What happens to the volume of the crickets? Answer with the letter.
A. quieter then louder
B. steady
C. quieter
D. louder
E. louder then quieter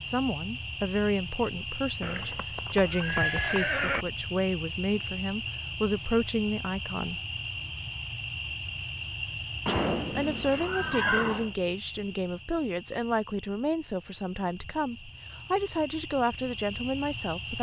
C.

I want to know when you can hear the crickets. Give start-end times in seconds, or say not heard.
0.0-17.5.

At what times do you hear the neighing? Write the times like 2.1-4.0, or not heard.
2.0-4.0, 9.7-11.5.